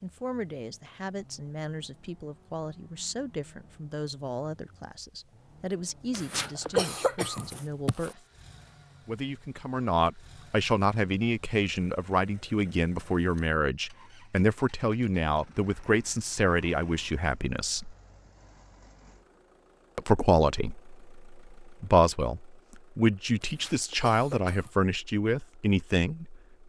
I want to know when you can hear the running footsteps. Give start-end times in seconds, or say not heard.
not heard.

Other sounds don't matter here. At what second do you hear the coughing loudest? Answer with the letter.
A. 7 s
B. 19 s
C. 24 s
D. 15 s
A.